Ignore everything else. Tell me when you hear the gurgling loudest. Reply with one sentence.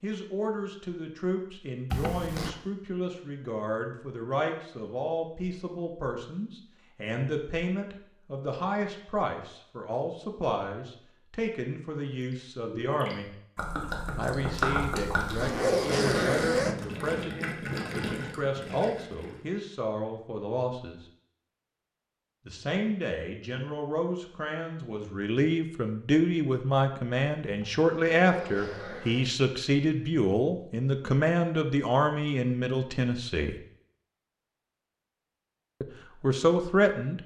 The volume of the gurgling peaks at 15 seconds.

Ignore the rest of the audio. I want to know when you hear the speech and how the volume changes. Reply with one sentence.
The speech can be heard from 0.0 to 13.3 s, at a steady volume; from 14.2 to 21.0 s, at a steady volume; from 22.4 to 33.5 s, getting louder; and briefly from 35.8 to 37.2 s.